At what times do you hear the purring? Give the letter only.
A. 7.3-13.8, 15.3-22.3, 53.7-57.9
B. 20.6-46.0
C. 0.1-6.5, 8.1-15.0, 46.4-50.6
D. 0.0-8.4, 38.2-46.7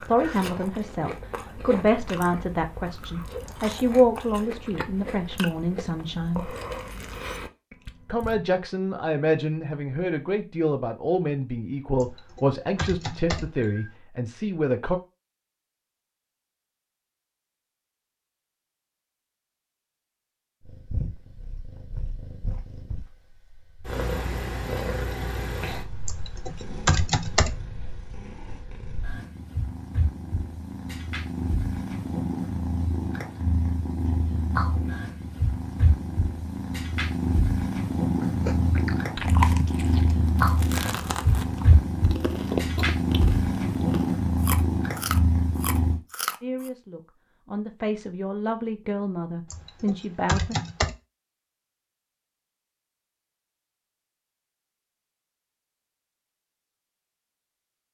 B.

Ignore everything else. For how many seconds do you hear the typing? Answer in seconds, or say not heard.
5 s.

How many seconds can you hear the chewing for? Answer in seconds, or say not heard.
17 s.